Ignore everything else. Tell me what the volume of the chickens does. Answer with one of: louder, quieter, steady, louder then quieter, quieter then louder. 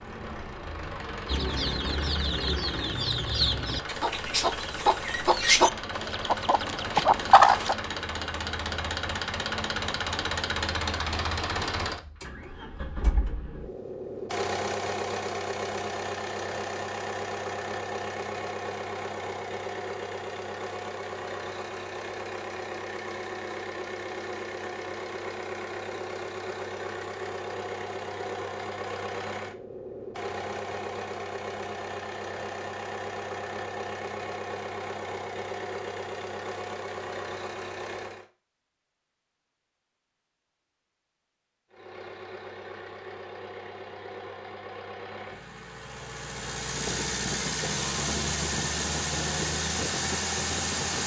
louder.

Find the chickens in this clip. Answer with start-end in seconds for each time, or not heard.
1.2-7.8.